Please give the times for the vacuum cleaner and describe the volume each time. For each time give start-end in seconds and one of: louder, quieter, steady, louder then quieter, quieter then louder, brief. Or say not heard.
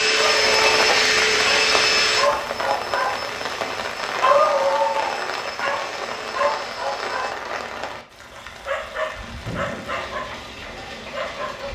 0.0-7.3 quieter.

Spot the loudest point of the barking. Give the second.
4 s.